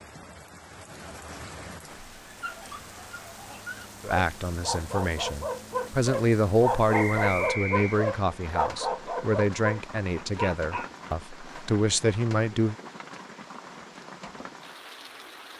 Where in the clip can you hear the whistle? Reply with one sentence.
You can hear the whistle from 6.9 to 8.0 s.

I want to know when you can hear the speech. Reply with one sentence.
The speech can be heard from 4.0 to 12.8 s.